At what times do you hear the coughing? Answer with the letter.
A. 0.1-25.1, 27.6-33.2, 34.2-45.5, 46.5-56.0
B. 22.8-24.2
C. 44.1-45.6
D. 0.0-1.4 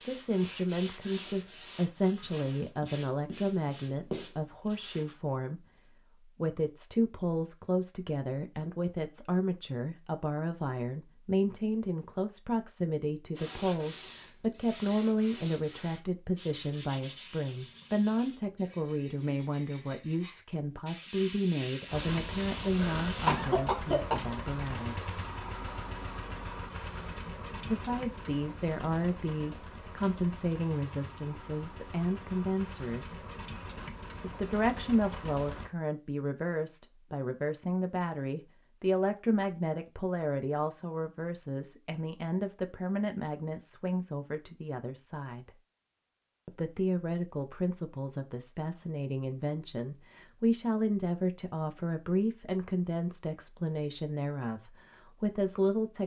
B.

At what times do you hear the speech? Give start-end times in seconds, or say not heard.
0.1-25.1, 27.6-33.2, 34.2-45.5, 46.5-56.0.